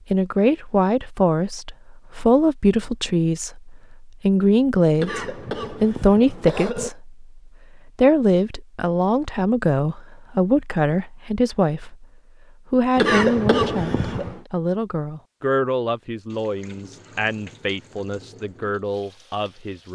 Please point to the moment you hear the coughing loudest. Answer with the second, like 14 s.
13 s.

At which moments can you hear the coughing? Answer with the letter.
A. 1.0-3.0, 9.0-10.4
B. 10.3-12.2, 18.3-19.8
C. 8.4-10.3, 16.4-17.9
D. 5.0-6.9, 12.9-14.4
D.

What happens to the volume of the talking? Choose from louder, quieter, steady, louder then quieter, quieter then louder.
quieter.